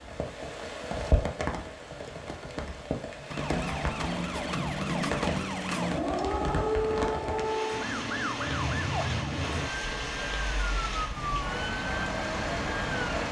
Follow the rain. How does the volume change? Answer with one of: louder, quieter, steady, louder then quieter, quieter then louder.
steady.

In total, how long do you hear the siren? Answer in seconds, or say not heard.
10 s.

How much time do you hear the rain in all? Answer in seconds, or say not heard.
13 s.